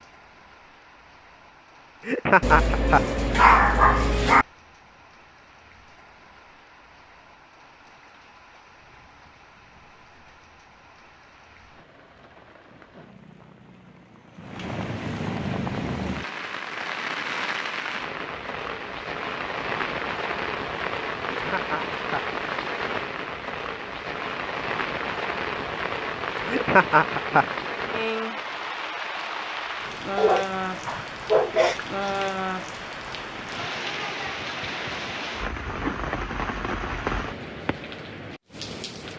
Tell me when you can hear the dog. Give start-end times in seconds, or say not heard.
2.4-4.5, 30.1-32.1.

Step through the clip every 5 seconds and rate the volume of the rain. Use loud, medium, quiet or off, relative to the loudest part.
quiet, quiet, quiet, loud, loud, loud, loud, loud.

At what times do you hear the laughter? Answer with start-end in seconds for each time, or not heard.
2.0-3.0, 21.2-22.2, 26.4-27.4.